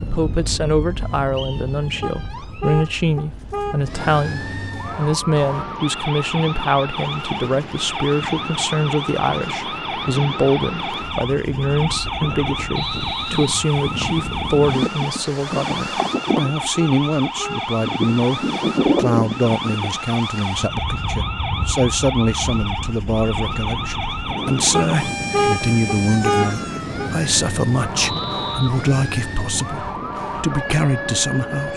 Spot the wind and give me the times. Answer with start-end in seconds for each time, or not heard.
0.0-31.7.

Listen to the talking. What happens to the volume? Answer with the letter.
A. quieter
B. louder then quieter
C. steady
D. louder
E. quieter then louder
C.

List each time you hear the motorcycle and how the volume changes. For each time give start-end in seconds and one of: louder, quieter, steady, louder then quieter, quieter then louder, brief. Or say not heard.
not heard.